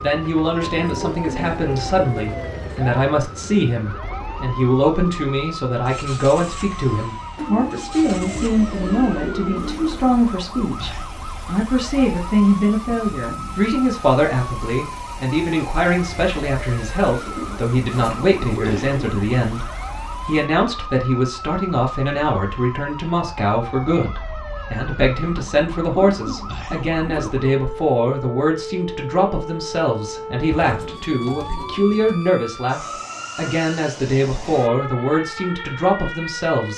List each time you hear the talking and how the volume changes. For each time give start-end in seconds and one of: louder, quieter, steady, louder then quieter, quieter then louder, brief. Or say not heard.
0.0-36.7 steady.